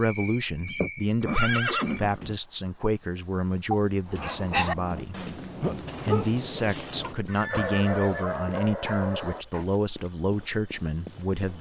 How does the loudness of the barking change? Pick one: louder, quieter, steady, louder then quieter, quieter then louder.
quieter then louder.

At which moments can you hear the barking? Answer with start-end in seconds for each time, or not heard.
4.0-9.7.